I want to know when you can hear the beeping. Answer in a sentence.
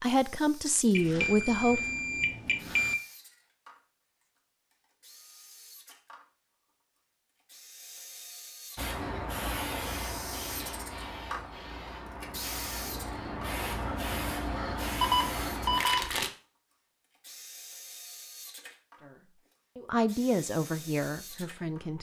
The beeping can be heard from 0.9 to 3.0 s and from 15.0 to 16.1 s.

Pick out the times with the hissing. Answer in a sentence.
The hissing can be heard from 8.8 to 16.3 s.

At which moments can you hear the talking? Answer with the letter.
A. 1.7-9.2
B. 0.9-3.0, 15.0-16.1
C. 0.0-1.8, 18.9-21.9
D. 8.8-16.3
C.